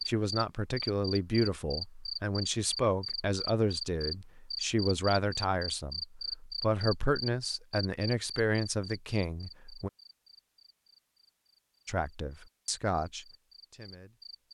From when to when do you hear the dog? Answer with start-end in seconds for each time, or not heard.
not heard.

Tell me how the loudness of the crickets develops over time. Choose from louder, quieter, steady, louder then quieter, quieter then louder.
quieter.